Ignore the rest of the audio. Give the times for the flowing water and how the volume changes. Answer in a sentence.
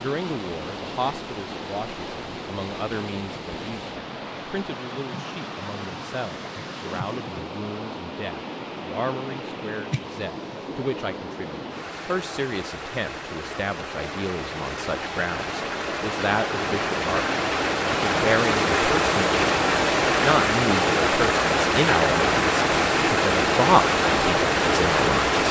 The flowing water can be heard from 0.0 to 25.4 s, getting louder.